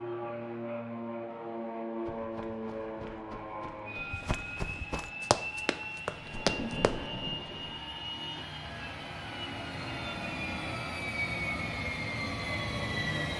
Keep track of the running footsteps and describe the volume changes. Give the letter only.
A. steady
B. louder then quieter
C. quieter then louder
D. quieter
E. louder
E.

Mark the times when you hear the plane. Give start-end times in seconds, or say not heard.
0.0-13.3.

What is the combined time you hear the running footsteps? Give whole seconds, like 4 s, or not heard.
5 s.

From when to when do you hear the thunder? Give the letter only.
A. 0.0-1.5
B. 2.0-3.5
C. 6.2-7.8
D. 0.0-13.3
C.